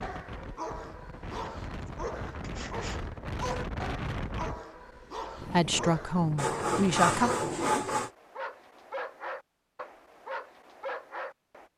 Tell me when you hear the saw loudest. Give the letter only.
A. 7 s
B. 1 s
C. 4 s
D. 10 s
A.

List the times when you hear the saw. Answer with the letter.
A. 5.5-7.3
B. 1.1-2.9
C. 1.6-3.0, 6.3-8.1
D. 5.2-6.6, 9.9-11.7
C.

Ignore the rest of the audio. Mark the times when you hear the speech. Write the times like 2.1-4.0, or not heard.
5.5-7.3.